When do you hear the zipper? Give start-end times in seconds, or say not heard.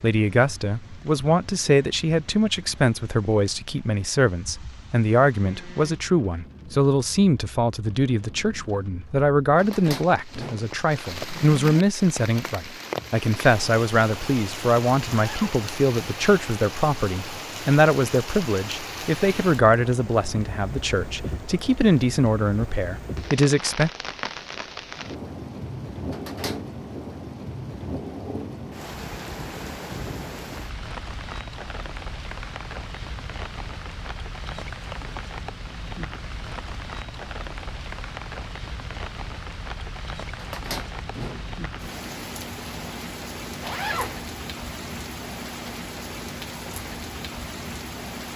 15.1-15.7, 43.6-44.2.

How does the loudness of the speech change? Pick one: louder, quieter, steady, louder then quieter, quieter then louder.
steady.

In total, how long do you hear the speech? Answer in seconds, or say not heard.
24 s.